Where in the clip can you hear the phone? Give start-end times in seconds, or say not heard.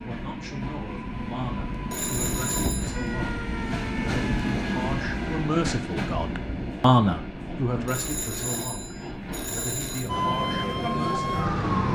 1.9-3.1, 7.8-10.1.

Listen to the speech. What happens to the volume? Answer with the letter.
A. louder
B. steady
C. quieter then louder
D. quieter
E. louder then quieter
E.